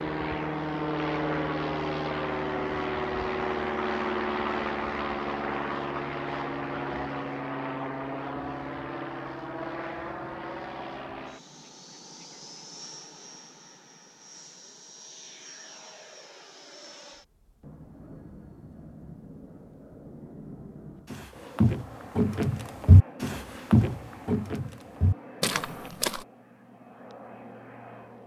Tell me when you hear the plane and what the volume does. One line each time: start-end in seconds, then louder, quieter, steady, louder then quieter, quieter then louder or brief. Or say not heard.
0.0-28.2 quieter.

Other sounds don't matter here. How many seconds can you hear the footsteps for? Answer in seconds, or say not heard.
5 s.